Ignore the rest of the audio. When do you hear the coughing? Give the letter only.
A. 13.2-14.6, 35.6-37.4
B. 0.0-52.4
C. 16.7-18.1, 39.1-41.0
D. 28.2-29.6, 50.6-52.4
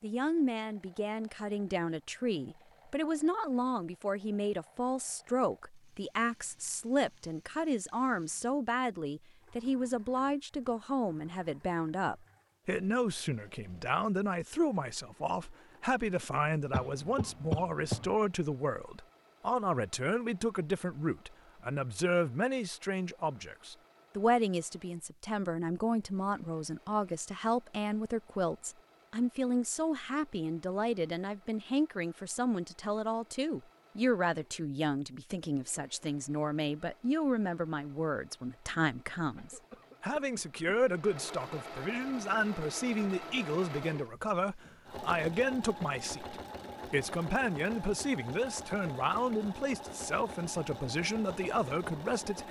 C.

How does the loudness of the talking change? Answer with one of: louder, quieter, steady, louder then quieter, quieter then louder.
steady.